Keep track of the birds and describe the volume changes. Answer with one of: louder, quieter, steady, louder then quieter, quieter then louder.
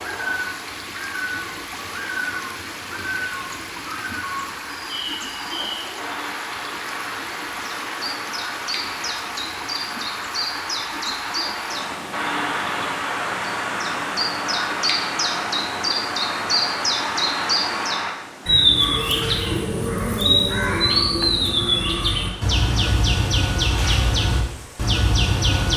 louder.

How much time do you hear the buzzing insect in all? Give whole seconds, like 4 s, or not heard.
not heard.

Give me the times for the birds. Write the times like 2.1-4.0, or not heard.
0.0-25.7.